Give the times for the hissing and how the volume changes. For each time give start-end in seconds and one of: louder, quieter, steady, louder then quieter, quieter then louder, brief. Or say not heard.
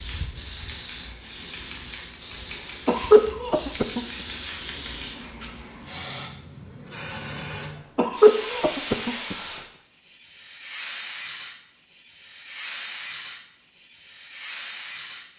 0.0-15.3 steady.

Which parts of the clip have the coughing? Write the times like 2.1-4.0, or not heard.
2.9-4.0, 8.0-9.3.